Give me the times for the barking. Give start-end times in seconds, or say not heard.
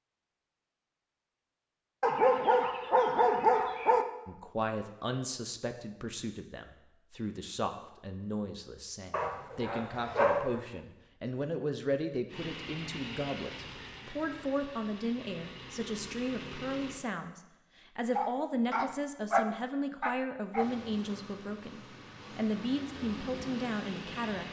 2.0-4.0, 9.1-10.6, 18.1-20.6.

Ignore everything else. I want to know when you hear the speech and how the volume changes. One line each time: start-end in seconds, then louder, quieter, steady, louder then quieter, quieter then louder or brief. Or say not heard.
4.2-24.4 steady.